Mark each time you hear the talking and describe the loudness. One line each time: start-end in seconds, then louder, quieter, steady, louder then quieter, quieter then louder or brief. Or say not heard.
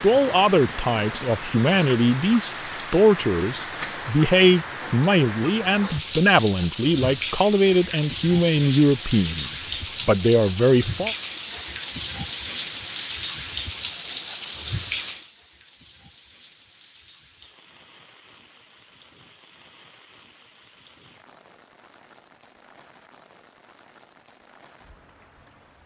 0.0-11.2 steady.